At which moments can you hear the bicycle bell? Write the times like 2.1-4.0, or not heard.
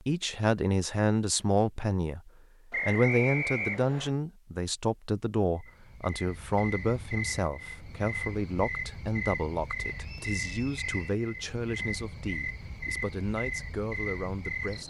not heard.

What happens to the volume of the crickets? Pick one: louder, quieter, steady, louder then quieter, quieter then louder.
steady.